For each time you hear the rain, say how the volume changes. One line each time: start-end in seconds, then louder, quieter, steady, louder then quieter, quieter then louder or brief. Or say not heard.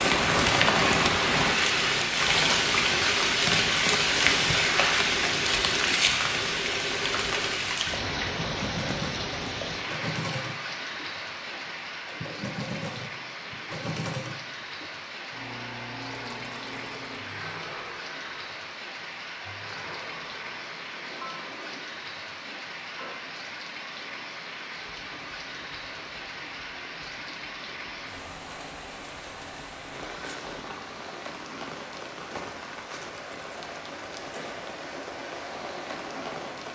0.0-36.6 quieter.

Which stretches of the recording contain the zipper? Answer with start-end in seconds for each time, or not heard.
not heard.